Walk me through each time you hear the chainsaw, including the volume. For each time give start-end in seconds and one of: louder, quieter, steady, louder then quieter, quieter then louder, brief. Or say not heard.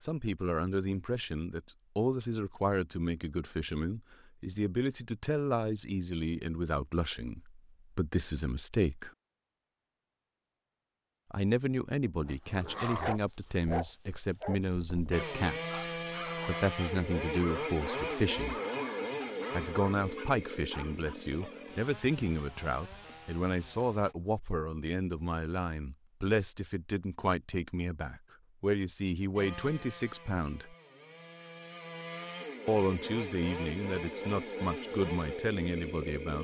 15.1-24.1 quieter
29.4-36.3 louder.